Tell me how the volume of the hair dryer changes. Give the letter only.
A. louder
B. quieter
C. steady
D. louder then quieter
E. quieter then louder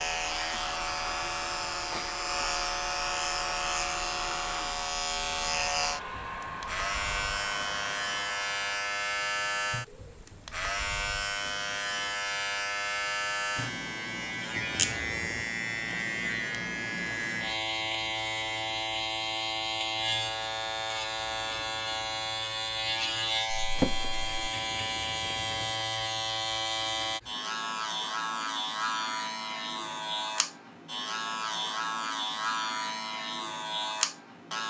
C.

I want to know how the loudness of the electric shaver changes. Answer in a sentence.
The loudness of the electric shaver stays about the same.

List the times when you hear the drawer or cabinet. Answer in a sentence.
The drawer or cabinet can be heard from 23.6 to 24.4 s.